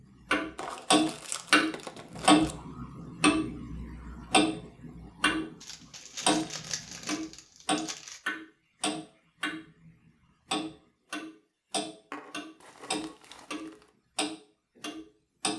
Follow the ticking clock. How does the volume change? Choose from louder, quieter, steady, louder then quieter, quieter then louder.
quieter.